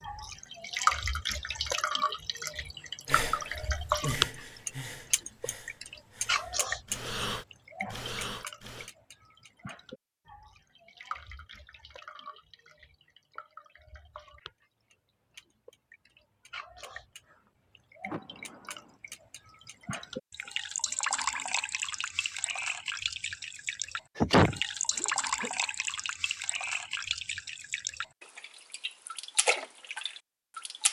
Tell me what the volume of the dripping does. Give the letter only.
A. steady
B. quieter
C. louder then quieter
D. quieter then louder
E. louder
D.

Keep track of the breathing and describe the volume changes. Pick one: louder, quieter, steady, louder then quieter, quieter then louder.
quieter then louder.